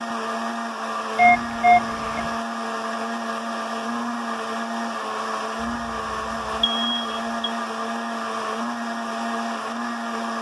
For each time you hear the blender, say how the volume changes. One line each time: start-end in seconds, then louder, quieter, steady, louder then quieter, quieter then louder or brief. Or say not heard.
0.0-10.3 steady.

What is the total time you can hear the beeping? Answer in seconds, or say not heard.
2 s.